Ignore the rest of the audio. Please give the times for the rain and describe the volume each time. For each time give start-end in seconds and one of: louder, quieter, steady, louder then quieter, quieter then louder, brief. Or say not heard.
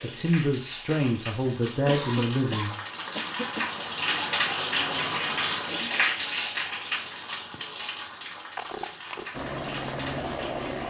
0.0-10.8 louder then quieter.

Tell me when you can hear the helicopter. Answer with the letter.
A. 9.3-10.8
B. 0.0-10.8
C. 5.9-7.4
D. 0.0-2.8
A.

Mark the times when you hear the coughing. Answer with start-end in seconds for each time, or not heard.
1.7-3.9, 8.5-9.2.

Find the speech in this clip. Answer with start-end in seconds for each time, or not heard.
0.0-2.8.